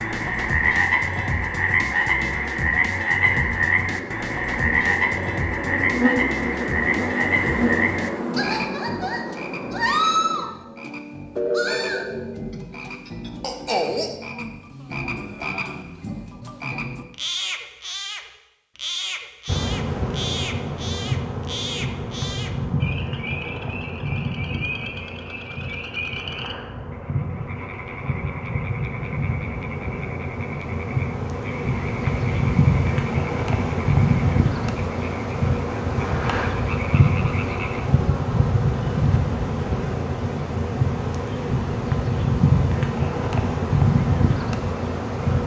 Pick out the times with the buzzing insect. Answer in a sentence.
You can hear the buzzing insect from 0.1 to 10.4 s and from 19.4 to 45.4 s.